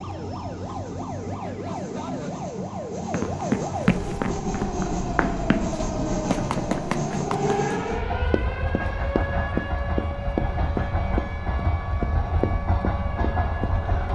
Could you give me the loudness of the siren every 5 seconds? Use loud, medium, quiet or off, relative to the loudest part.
loud, loud, medium.